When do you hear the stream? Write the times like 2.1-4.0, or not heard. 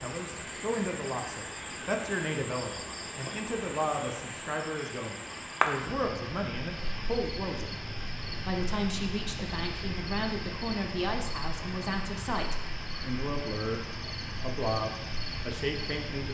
0.0-16.3.